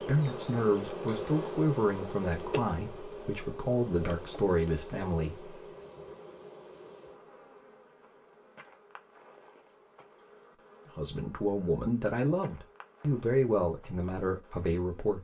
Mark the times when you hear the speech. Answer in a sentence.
You can hear the speech from 0.0 to 5.5 s and from 10.9 to 15.1 s.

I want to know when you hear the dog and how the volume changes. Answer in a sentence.
The dog can't be heard in this clip.